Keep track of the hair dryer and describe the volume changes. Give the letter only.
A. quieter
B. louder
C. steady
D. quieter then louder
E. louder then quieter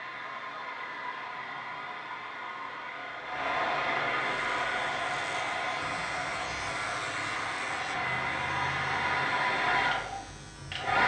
B.